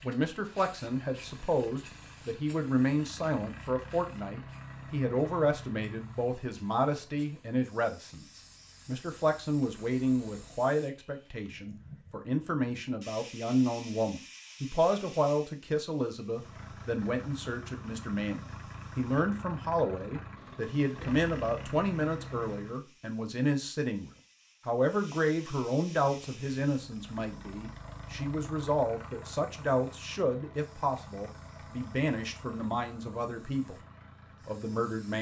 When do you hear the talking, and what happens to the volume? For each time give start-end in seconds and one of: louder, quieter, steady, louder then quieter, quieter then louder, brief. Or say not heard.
0.0-33.8 steady
34.5-35.1 brief.